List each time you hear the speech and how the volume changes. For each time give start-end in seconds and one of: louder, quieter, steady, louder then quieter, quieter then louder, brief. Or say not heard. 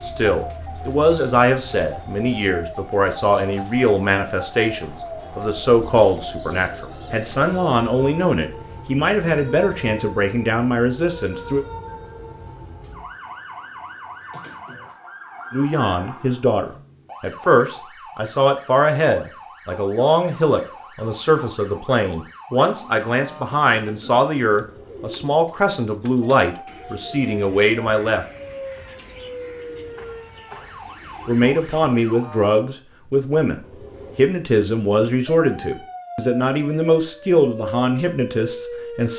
0.1-11.7 steady
15.5-28.2 steady
31.2-39.1 steady.